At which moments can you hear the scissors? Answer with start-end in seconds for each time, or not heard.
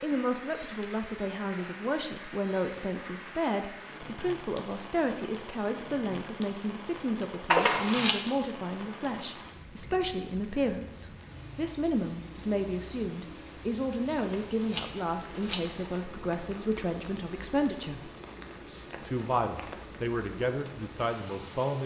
7.5-8.2, 14.2-15.9.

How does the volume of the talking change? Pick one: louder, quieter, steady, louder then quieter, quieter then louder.
steady.